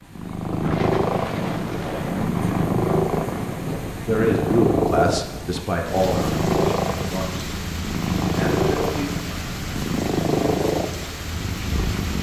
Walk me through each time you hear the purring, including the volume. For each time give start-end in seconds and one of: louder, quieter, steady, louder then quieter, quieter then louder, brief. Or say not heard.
0.1-12.1 steady.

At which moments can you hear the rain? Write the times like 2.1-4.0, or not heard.
0.0-12.1.